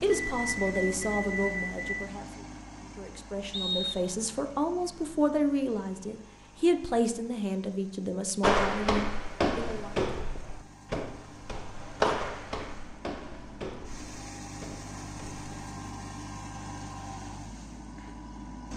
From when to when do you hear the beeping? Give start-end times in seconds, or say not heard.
0.2-1.9.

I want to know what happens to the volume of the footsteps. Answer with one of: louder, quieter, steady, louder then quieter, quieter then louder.
quieter.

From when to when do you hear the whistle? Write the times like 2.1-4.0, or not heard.
3.5-4.2.